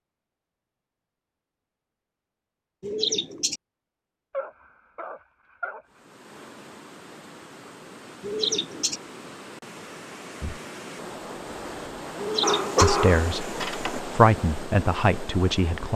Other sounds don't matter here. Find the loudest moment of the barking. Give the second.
13 s.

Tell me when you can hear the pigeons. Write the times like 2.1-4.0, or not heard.
2.8-3.6, 8.2-9.0, 12.2-12.9.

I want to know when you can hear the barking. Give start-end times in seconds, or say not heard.
4.3-5.8, 12.4-14.0.